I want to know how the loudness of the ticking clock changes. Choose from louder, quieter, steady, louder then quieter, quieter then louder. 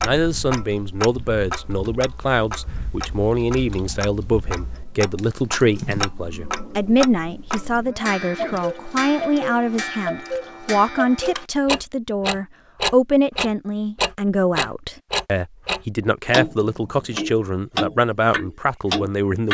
louder.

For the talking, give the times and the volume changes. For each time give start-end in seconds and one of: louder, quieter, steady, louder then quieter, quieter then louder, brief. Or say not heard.
0.0-19.4 steady.